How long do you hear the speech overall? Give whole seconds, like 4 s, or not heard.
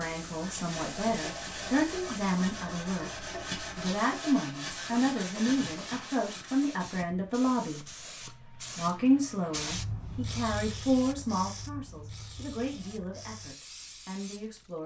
15 s.